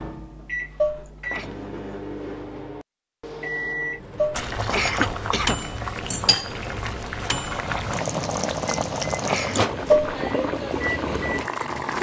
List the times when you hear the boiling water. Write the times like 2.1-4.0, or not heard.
4.3-11.9.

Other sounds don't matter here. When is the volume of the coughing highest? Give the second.
5 s.